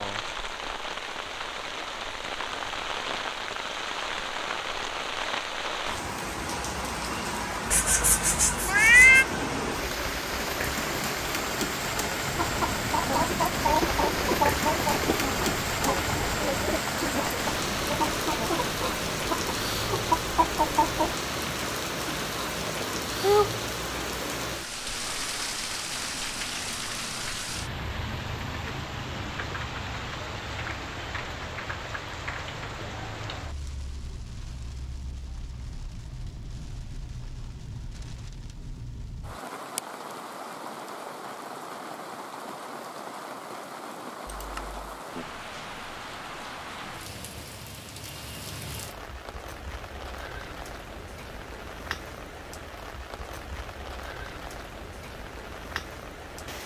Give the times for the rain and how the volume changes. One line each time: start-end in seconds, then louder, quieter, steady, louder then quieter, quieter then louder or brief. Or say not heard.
0.0-56.6 quieter.